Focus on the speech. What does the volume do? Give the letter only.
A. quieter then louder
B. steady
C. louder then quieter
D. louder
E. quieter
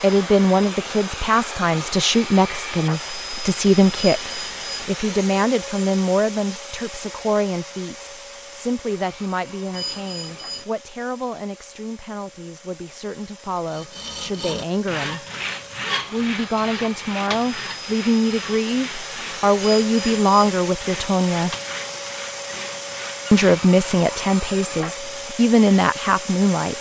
A.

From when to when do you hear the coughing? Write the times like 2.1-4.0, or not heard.
not heard.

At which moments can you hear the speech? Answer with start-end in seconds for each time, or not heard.
0.0-15.2, 16.1-21.6, 23.3-26.7.